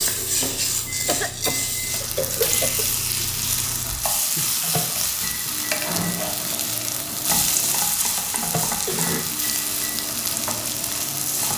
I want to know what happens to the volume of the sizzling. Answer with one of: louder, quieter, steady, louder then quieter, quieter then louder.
steady.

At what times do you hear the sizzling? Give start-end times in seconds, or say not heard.
0.0-11.5.